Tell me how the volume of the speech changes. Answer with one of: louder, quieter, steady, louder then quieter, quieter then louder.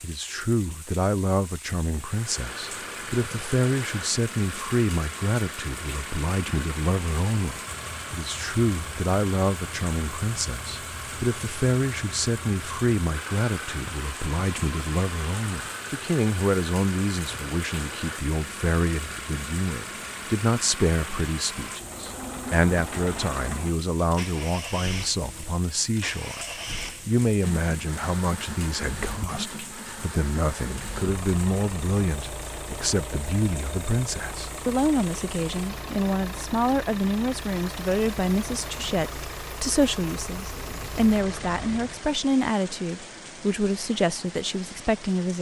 steady.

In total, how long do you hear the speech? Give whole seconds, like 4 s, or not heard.
45 s.